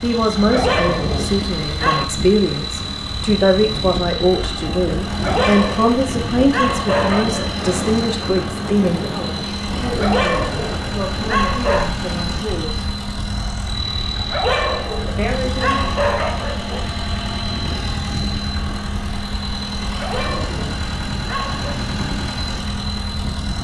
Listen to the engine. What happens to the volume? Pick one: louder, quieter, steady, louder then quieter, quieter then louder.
steady.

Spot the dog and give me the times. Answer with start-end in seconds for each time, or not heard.
0.3-2.0, 5.0-7.6, 9.8-11.9, 14.2-16.9, 19.9-21.8.